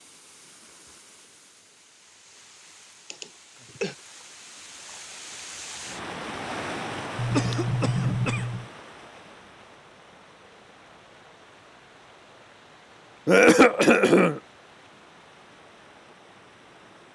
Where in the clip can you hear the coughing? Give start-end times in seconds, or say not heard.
3.1-4.0, 7.2-8.7, 13.2-14.4.